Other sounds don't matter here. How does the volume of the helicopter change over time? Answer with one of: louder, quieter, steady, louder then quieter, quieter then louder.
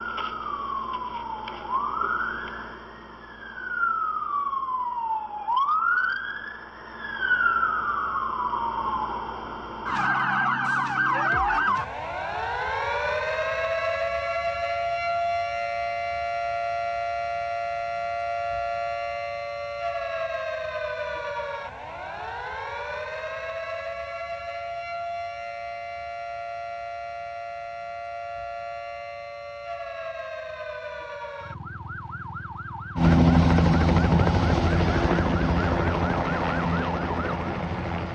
quieter.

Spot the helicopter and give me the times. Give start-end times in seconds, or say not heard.
33.0-38.1.